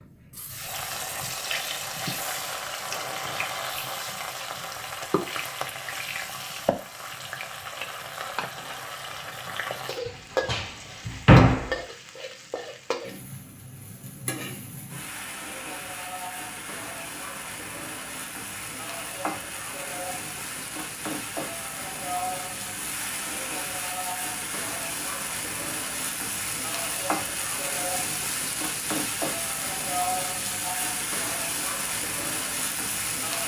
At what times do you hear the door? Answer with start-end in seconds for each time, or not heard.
10.1-11.8.